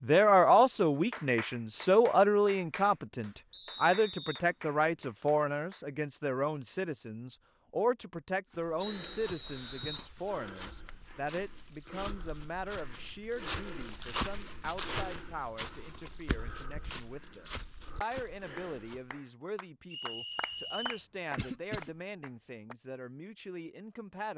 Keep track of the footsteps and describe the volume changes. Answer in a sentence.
The loudness of the footsteps goes up, then down.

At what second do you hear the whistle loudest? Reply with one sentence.
The volume of the whistle peaks at 9 seconds.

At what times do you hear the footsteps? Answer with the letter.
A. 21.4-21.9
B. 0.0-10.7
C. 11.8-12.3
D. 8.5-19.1
D.